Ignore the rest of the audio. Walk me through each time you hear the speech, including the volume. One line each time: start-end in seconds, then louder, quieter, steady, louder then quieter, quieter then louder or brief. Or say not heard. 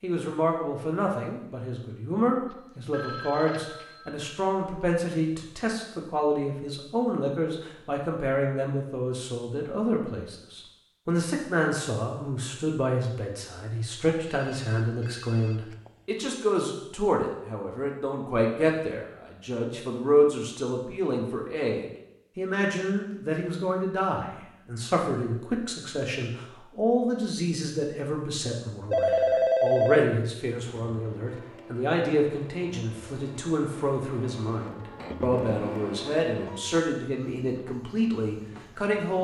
0.0-39.1 steady.